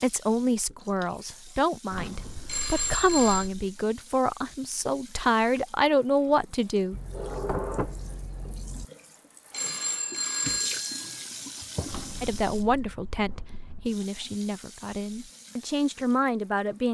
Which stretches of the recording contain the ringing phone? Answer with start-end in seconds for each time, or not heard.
2.5-3.5, 9.5-11.2.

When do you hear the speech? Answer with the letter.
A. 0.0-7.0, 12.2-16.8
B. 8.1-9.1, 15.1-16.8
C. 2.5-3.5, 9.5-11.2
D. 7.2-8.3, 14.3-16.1
A.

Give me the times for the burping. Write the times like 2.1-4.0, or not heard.
not heard.